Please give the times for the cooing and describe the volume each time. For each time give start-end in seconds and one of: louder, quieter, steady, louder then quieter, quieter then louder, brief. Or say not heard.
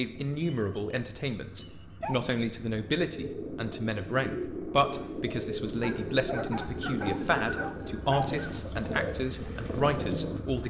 3.1-10.3 steady.